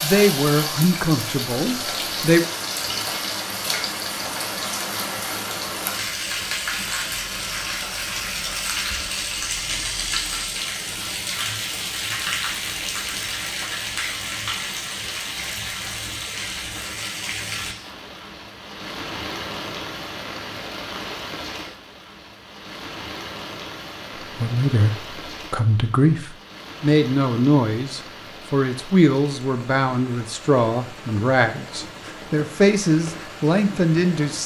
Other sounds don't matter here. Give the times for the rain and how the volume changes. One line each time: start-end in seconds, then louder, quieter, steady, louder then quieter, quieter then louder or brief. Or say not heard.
0.0-34.4 quieter.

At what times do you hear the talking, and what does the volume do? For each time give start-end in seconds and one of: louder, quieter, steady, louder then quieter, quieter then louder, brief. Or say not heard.
0.0-2.4 brief
24.2-34.4 steady.